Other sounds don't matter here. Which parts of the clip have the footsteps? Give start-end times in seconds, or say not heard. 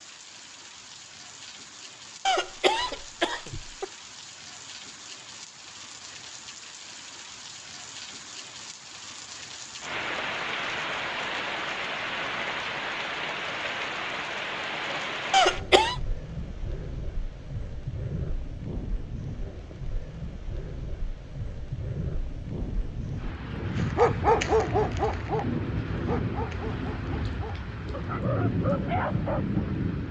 not heard.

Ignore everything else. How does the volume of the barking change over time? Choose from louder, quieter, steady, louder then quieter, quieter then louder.
quieter then louder.